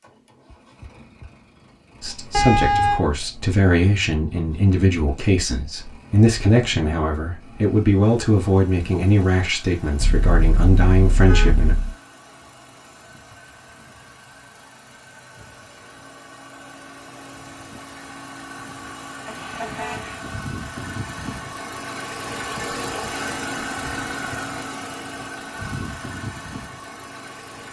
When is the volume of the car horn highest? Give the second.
3 s.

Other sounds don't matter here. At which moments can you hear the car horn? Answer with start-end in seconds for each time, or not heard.
2.3-3.0, 10.0-11.9, 19.2-20.2.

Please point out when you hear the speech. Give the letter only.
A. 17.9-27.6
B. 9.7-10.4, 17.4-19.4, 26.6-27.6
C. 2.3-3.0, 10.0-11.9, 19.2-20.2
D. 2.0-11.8
D.